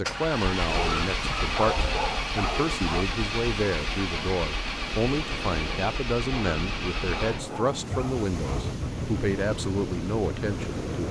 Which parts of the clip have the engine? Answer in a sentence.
The engine can be heard from 0.0 to 11.0 s.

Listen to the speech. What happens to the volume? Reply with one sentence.
The loudness of the speech stays about the same.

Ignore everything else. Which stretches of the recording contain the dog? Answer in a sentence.
You can hear the dog from 0.7 to 3.1 s and from 6.2 to 8.8 s.